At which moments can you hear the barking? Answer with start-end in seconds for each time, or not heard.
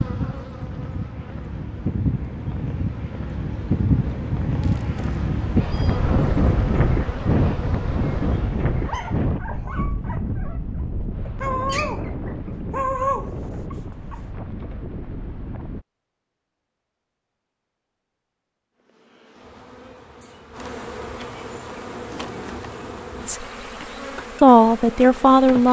8.7-14.2.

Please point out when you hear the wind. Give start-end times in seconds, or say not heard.
0.0-15.8.